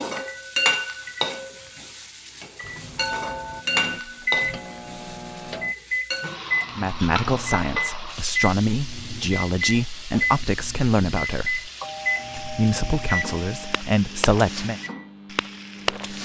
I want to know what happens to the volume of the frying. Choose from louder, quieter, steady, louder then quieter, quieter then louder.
quieter.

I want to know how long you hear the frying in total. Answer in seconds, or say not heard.
16 s.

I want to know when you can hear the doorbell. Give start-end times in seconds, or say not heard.
2.6-3.6, 11.8-13.8.